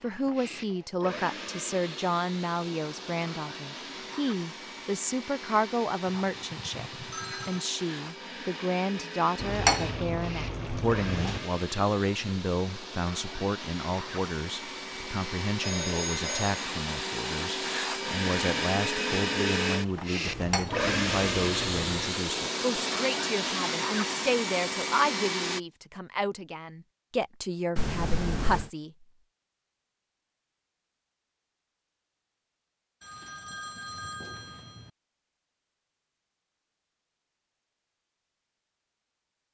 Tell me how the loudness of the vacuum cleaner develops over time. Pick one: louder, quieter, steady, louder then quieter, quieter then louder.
louder.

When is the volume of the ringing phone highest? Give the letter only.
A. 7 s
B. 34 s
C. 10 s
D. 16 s
D.